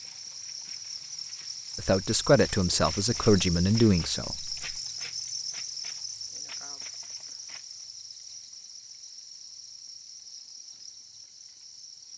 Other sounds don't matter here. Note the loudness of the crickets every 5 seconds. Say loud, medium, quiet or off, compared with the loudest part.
loud, loud, medium.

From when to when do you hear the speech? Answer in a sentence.
You can hear the speech from 1.8 to 4.5 s.